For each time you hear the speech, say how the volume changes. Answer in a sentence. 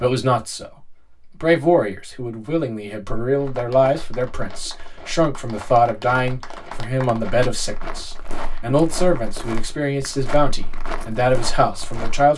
The speech can be heard from 0.0 to 12.3 s, at a steady volume.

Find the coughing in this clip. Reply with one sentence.
The coughing can't be heard in this clip.